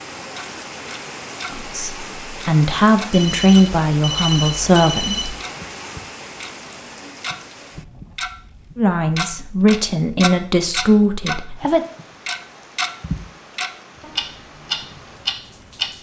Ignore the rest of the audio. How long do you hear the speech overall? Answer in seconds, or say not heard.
7 s.